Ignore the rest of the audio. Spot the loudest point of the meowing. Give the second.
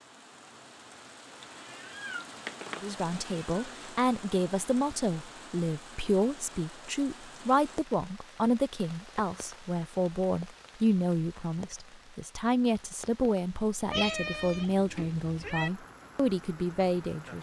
14 s.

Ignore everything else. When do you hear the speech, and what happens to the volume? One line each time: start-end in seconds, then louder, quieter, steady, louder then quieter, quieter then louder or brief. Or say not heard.
2.8-17.3 steady.